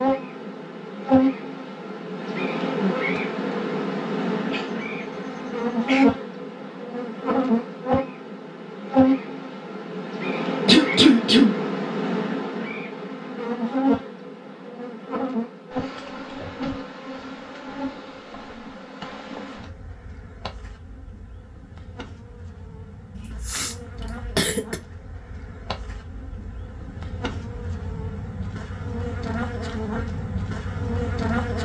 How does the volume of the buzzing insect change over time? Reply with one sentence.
The loudness of the buzzing insect goes down, then up.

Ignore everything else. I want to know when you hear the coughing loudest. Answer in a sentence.
The volume of the coughing peaks at 11 seconds.